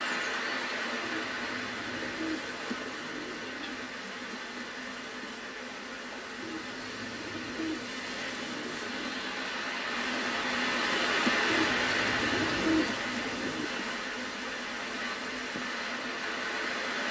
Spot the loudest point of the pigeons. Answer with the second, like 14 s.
13 s.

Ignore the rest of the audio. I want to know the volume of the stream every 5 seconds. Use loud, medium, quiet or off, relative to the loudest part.
medium, medium, loud, loud.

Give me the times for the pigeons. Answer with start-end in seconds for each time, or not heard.
1.0-4.0, 6.4-9.2, 11.4-13.7.